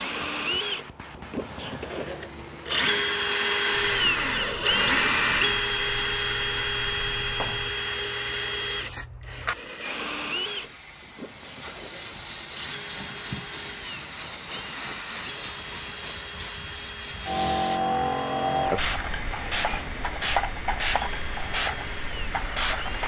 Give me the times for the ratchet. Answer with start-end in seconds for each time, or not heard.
not heard.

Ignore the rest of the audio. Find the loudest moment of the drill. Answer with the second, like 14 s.
5 s.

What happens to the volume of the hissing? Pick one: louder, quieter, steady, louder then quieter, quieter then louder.
louder.